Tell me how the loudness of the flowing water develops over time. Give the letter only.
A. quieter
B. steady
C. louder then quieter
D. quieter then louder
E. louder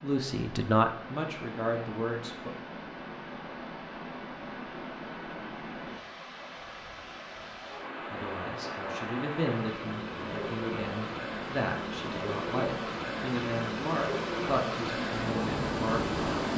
E.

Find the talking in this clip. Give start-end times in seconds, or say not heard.
0.0-2.5, 8.1-16.5.